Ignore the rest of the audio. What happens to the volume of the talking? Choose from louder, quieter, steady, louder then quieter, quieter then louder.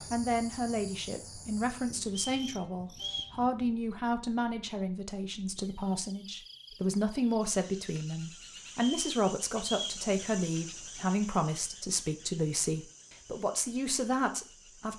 steady.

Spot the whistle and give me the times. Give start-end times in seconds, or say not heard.
2.0-3.4, 8.7-10.1.